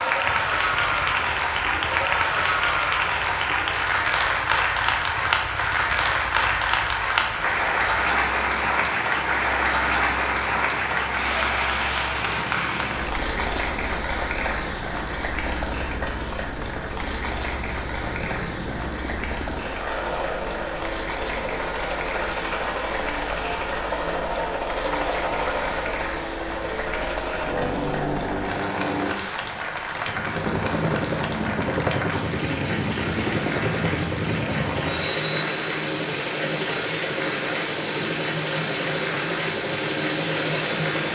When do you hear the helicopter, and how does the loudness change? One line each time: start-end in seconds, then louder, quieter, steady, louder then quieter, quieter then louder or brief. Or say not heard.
0.0-41.1 louder.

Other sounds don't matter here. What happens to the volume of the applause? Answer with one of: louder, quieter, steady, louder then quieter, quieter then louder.
quieter.